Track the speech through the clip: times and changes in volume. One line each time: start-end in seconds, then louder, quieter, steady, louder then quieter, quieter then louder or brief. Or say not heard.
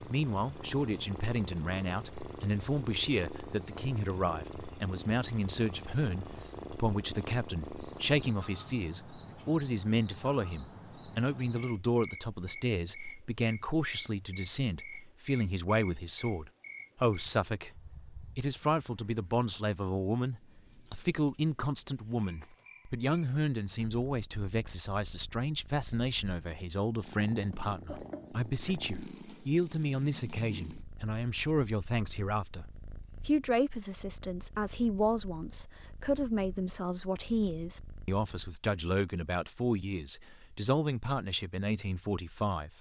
0.0-42.7 steady.